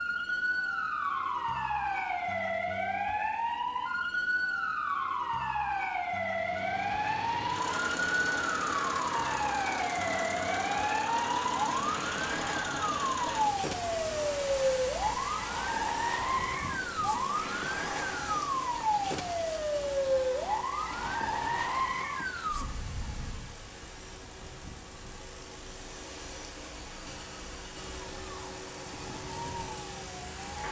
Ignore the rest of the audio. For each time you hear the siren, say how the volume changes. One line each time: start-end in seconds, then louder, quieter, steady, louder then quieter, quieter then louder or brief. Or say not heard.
0.0-30.6 quieter.